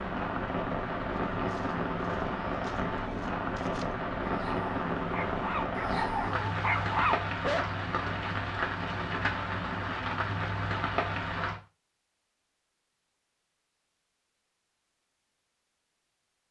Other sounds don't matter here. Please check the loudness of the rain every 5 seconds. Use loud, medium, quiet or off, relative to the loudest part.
loud, loud, loud, off.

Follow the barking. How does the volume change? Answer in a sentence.
The volume of the barking goes up.